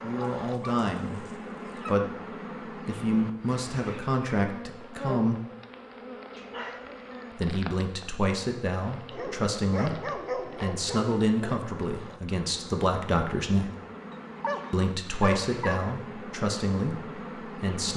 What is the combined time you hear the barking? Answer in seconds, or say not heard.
7 s.